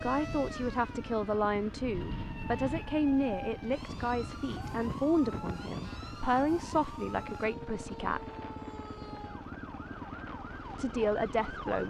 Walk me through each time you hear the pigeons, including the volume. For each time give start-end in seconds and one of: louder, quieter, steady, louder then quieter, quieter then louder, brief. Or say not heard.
not heard.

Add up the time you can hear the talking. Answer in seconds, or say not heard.
9 s.